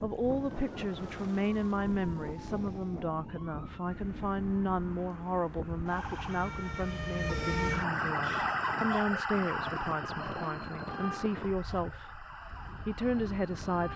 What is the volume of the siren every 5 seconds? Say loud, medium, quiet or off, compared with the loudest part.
quiet, loud, medium.